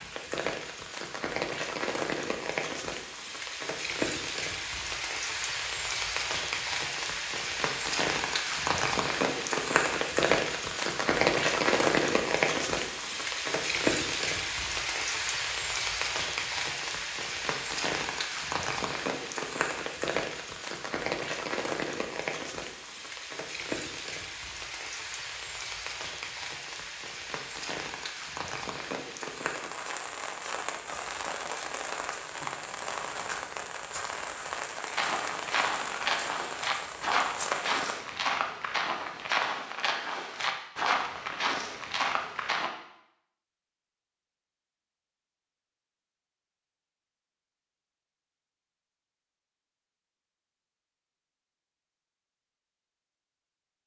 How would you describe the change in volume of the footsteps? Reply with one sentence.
The volume of the footsteps stays about the same.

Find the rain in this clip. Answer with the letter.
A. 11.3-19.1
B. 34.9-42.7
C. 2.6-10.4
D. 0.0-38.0
D.